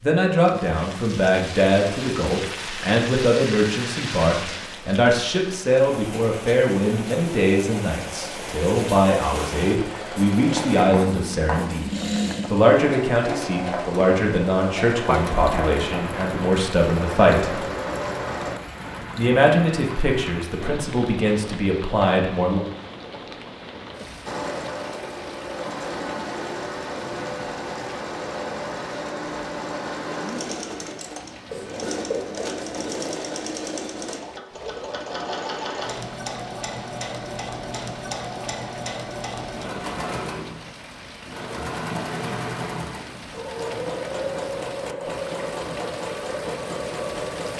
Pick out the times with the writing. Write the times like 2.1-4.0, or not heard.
10.2-11.9, 31.4-33.0.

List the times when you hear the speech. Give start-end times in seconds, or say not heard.
0.0-11.9, 12.5-17.6, 19.1-22.6.